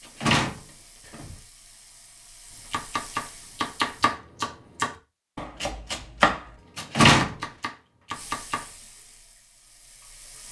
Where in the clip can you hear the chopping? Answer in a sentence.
The chopping can be heard from 2.5 to 8.8 s.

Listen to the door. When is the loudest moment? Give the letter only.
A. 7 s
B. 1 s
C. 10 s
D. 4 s
A.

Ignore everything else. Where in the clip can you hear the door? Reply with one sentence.
The door can be heard from 0.2 to 1.4 s and from 6.9 to 7.3 s.